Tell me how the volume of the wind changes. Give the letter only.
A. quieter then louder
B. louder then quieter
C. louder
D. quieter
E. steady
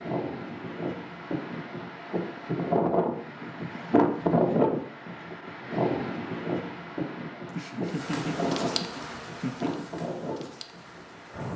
B.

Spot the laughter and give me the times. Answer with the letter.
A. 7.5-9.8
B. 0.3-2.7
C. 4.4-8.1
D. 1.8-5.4
A.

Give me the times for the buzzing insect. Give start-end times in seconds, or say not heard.
7.8-11.5.